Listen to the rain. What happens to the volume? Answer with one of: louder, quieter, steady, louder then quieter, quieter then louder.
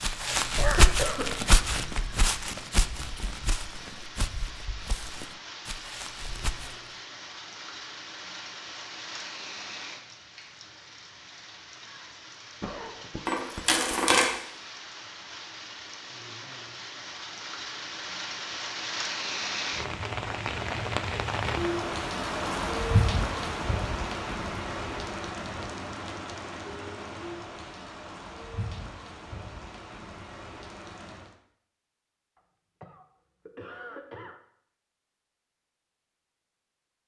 louder then quieter.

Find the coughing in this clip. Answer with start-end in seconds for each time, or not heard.
0.6-1.2, 12.6-13.9, 32.4-34.4.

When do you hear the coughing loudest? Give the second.
1 s.